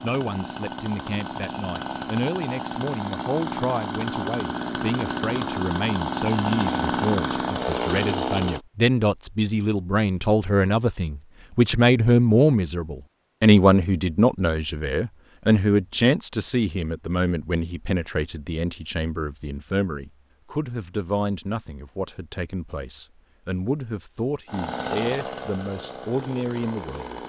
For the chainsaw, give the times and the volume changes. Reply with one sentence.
You can hear the chainsaw from 0.0 to 8.7 s, getting louder; and briefly from 24.4 to 27.2 s.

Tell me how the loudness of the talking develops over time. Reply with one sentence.
The volume of the talking goes up, then down.